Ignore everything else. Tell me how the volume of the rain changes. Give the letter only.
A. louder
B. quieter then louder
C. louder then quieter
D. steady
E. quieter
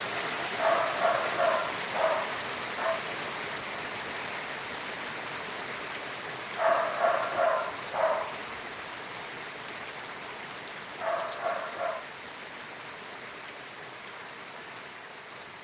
E.